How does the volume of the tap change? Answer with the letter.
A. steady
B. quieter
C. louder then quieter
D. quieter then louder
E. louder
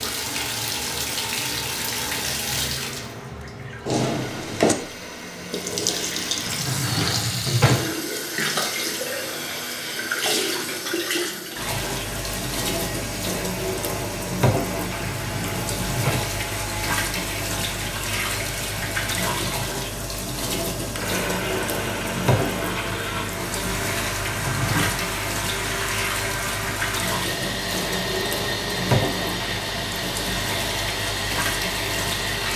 A.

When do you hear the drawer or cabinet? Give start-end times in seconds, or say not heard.
6.5-8.0, 15.1-16.4, 24.2-25.1.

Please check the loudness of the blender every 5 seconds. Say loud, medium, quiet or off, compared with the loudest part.
medium, medium, medium, medium, loud, loud, loud.